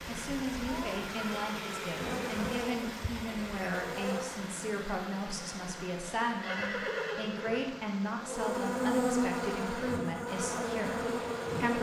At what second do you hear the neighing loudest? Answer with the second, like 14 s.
7 s.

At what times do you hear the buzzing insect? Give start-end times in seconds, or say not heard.
1.9-4.3, 8.2-11.7.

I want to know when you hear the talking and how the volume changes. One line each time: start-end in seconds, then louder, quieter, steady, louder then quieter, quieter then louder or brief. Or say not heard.
0.1-11.7 steady.